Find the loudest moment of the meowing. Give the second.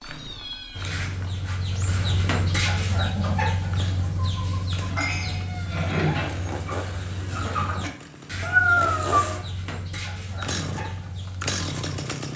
9 s.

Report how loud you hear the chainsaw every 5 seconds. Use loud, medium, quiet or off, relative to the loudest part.
medium, medium, loud.